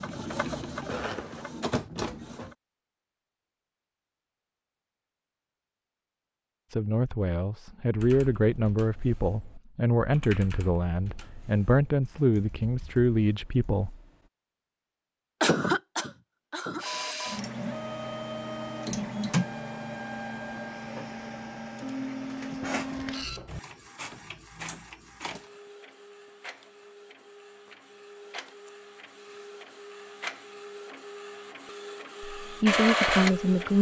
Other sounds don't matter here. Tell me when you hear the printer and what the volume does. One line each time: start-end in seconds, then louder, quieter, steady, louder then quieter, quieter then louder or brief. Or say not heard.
0.0-2.5 brief
16.8-33.7 quieter then louder.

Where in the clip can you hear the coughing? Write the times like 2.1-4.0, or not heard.
15.4-16.9.